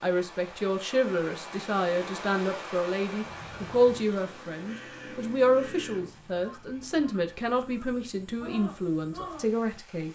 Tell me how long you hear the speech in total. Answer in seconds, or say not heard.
10 s.